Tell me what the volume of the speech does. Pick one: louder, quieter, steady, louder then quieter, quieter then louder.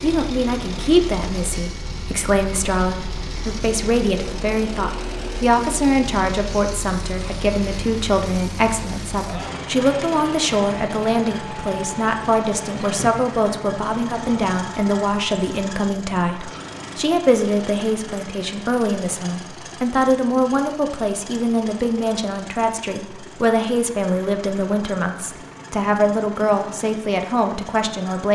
steady.